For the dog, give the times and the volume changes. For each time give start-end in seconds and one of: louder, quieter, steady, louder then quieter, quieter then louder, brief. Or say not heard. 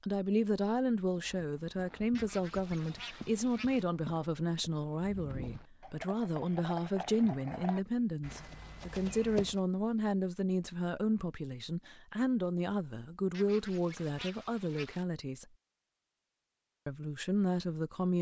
not heard.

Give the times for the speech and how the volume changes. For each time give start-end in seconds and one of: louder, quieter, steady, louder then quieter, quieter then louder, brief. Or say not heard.
0.0-15.4 steady
16.9-18.1 brief.